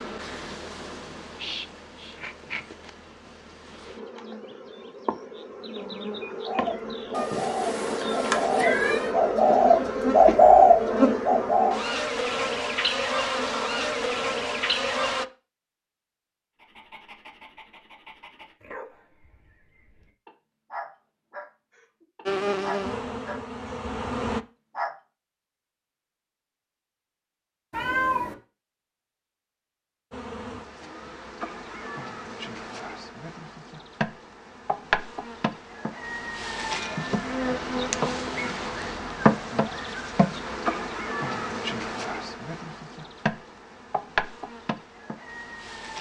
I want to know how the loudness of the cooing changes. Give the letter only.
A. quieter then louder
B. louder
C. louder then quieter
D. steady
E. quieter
B.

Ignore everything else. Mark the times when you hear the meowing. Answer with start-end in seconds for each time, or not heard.
7.2-9.1, 27.7-28.4.